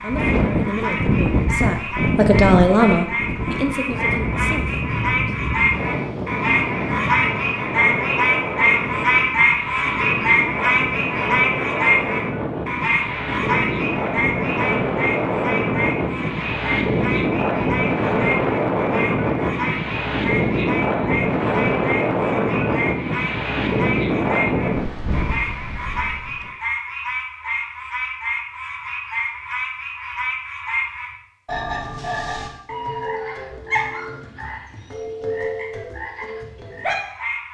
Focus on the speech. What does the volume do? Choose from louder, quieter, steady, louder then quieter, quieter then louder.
louder then quieter.